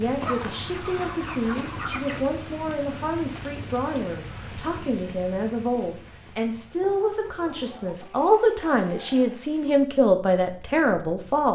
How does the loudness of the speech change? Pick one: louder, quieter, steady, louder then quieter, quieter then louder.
louder.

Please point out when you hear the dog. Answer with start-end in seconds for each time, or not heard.
not heard.